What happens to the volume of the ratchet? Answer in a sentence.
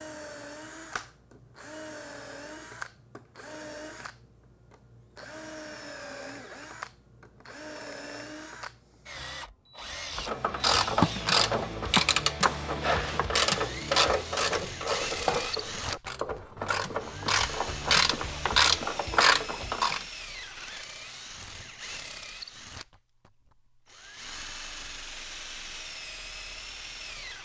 The loudness of the ratchet goes down, then up.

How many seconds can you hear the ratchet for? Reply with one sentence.
The ratchet can be heard for 10 seconds in total.